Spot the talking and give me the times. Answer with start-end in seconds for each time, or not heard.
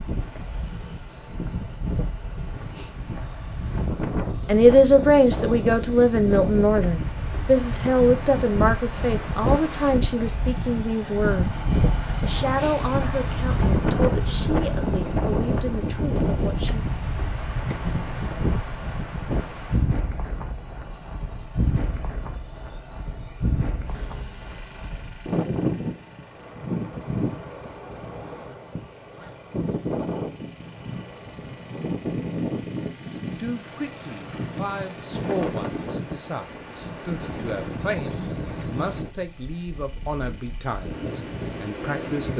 4.5-16.9, 33.2-42.3.